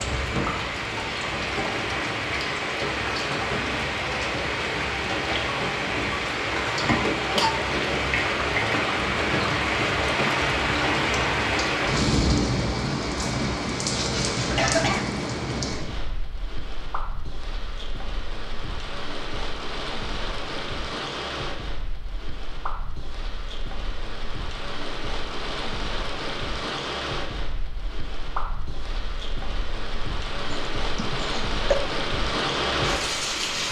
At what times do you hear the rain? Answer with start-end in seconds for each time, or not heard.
0.0-33.6.